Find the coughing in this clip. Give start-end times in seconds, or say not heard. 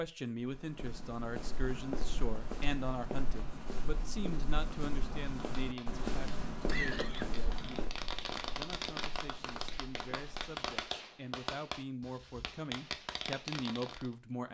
6.7-7.4.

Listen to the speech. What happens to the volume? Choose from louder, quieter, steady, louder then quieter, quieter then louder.
quieter then louder.